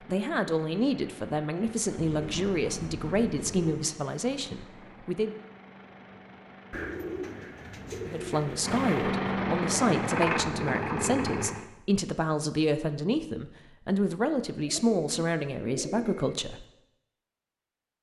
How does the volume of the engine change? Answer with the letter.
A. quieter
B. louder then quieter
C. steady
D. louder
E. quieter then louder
D.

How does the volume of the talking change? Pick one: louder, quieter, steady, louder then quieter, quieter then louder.
steady.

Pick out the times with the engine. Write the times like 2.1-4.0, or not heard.
0.0-11.7.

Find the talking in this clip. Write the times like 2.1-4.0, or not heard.
0.1-5.3, 8.1-16.6.